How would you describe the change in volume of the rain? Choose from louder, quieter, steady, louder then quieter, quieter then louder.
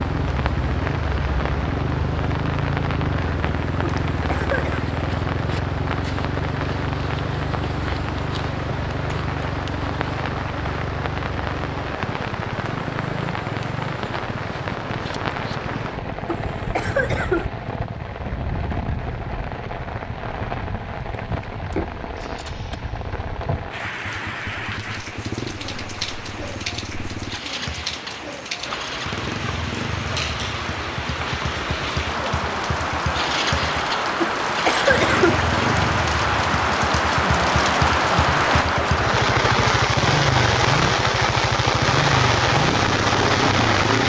louder.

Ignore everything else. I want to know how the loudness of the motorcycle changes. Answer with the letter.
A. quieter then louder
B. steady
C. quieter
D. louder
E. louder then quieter
A.